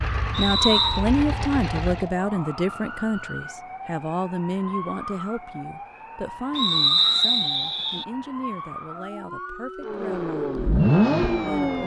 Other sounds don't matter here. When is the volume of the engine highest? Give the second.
11 s.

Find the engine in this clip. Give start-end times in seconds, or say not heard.
0.0-2.1, 9.8-11.8.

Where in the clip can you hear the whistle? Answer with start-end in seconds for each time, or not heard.
0.3-1.1, 6.5-8.1.